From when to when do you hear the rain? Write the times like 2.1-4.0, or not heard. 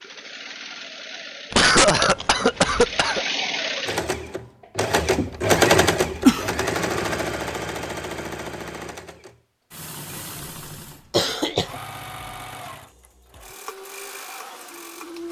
not heard.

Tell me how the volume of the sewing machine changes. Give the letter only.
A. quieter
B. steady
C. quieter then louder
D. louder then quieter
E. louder
D.